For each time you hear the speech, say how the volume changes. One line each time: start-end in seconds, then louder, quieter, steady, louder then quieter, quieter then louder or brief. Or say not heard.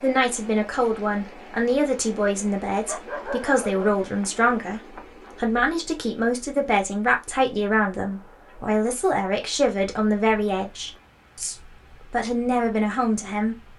0.0-13.6 steady.